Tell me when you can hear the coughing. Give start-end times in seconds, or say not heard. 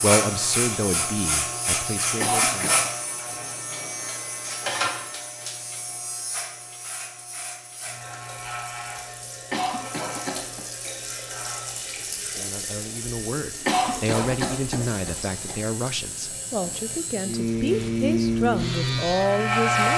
2.2-2.9, 9.5-10.7, 13.7-15.6.